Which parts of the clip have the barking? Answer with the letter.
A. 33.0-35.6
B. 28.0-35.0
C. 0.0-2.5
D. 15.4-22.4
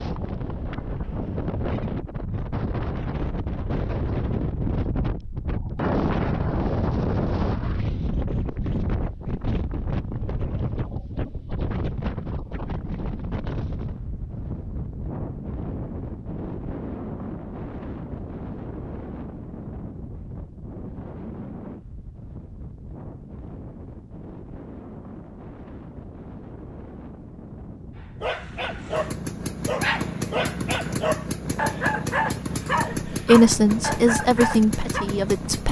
B.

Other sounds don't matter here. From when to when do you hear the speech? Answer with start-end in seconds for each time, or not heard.
33.0-35.6.